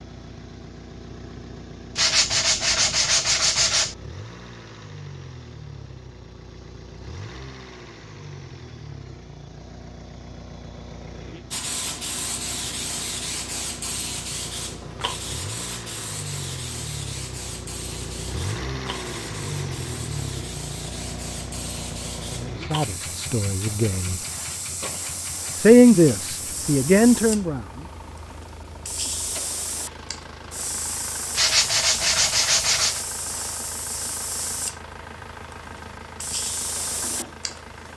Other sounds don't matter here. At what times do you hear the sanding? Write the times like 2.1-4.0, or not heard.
1.9-4.0, 31.4-33.0.